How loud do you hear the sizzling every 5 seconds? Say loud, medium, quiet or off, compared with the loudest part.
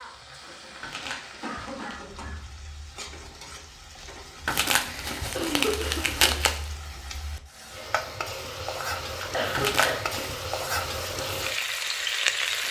quiet, medium, loud.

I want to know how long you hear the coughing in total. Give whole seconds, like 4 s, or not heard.
5 s.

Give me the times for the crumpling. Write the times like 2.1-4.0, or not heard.
0.8-1.9, 4.5-6.7, 9.6-10.3.